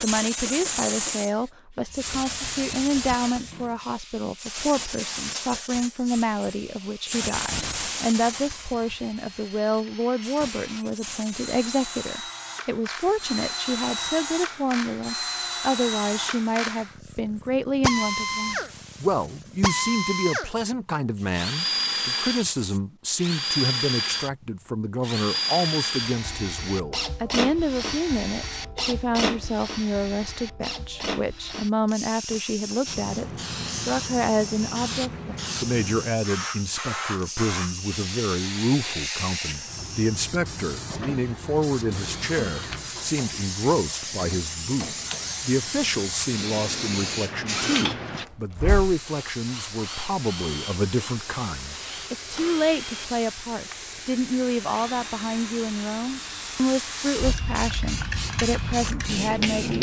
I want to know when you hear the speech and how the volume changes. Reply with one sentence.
The speech can be heard from 0.0 to 59.7 s, at a steady volume.